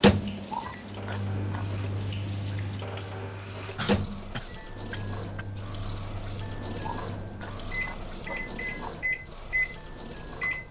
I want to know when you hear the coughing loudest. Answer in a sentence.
The volume of the coughing peaks at 4 seconds.